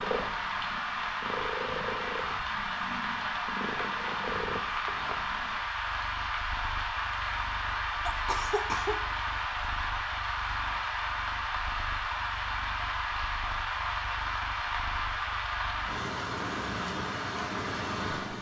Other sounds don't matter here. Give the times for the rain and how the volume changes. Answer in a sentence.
You can hear the rain from 0.0 to 18.3 s, at a steady volume.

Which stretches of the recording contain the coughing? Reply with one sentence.
The coughing can be heard from 8.1 to 9.0 s.